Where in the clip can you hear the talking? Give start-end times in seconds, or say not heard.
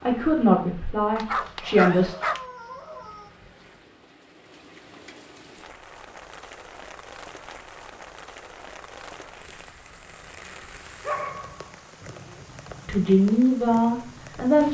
0.0-2.1, 12.8-14.6.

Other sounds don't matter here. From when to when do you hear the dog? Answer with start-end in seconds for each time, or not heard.
1.1-2.4, 11.1-12.4.